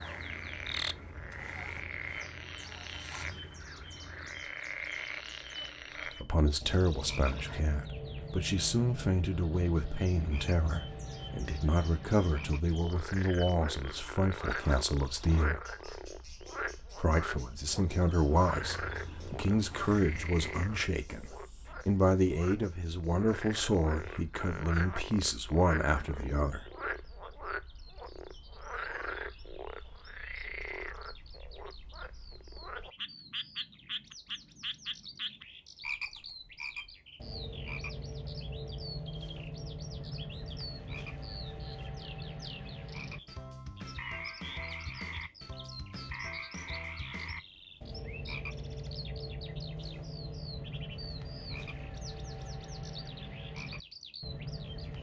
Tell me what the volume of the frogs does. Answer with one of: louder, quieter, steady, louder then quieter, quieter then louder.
steady.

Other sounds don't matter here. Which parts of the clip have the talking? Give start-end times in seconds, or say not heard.
6.0-15.6, 16.9-26.7.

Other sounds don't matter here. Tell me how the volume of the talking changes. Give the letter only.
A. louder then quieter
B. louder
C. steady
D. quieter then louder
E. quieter
C.